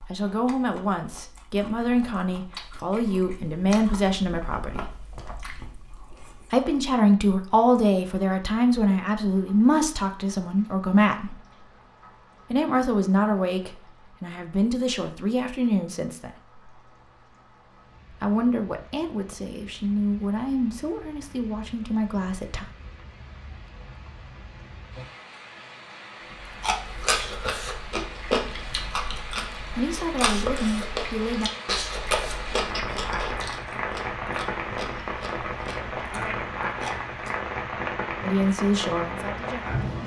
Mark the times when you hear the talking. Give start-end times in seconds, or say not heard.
0.1-5.0, 6.5-11.3, 12.5-16.3, 18.1-22.7, 29.7-31.5, 38.2-39.8.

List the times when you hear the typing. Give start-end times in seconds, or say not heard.
not heard.